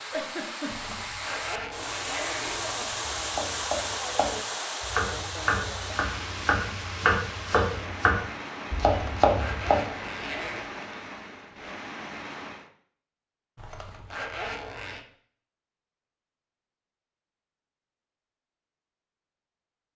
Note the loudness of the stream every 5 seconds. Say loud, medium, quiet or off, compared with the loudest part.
loud, loud, medium, off.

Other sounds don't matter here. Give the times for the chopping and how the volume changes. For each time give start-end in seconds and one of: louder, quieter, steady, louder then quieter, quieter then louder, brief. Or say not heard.
3.0-9.8 louder.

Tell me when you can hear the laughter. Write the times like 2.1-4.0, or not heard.
0.1-0.9.